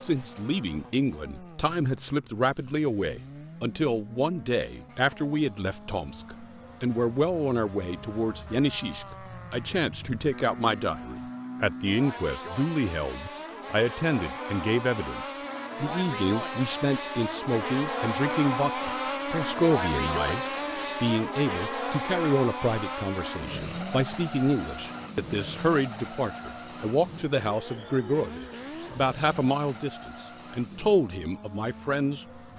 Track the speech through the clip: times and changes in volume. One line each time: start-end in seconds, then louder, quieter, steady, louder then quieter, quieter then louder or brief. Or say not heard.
0.0-32.5 steady.